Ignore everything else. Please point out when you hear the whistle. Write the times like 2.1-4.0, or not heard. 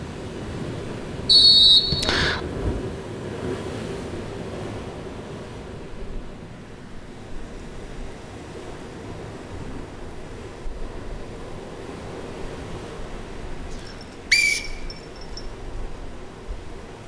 1.2-2.4, 13.8-15.4.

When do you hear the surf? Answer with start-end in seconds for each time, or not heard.
0.0-17.0.